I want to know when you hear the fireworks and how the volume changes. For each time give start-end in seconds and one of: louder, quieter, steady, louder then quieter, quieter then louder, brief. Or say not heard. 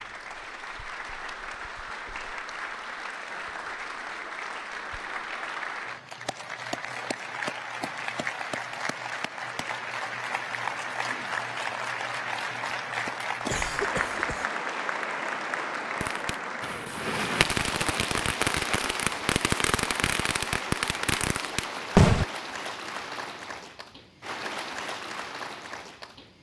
16.0-22.2 steady.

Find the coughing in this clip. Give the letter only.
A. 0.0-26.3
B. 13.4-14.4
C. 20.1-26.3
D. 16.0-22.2
B.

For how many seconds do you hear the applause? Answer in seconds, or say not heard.
26 s.